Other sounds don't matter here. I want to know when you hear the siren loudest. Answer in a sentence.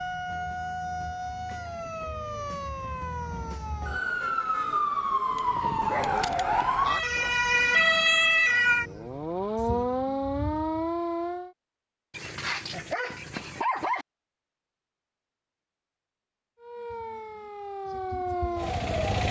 The loudest moment of the siren is at 8 seconds.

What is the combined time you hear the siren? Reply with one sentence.
You can hear the siren for 14 seconds altogether.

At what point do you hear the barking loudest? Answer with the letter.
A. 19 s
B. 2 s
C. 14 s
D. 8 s
C.